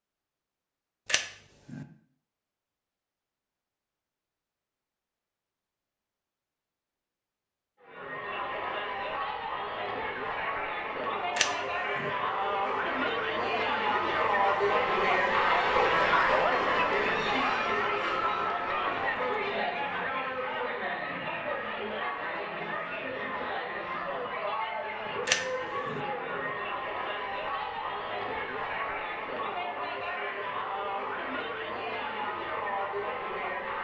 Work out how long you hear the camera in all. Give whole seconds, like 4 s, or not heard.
2 s.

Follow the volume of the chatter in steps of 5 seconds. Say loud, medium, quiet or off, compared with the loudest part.
off, medium, loud, loud, medium, medium, medium.